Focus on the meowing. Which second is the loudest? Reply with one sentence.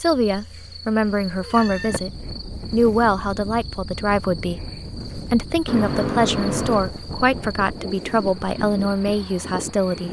The volume of the meowing peaks at 6 seconds.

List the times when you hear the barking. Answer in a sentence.
The barking can't be heard in this clip.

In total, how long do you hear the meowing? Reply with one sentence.
The meowing can be heard for 3 seconds in total.